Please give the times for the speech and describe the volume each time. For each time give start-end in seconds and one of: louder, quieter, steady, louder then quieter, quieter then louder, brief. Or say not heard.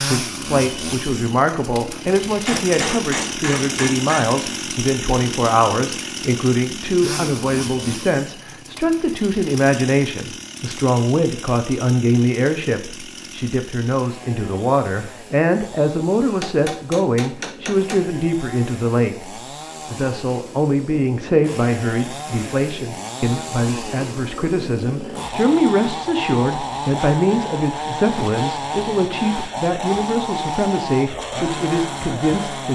0.1-32.6 steady.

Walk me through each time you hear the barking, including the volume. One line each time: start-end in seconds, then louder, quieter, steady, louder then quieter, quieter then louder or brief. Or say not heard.
not heard.